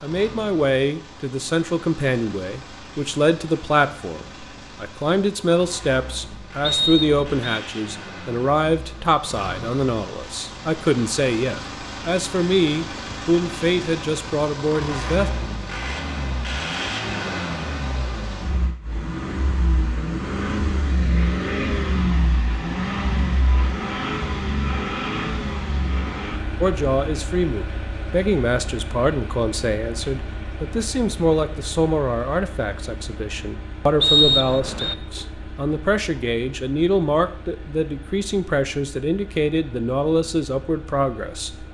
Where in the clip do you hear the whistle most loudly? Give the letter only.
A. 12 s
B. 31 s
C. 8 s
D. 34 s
D.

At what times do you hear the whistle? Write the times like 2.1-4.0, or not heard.
6.6-7.6, 34.0-35.0.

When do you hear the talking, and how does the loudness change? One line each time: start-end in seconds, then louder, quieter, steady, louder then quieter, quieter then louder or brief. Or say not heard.
0.0-15.3 steady
26.6-41.6 steady.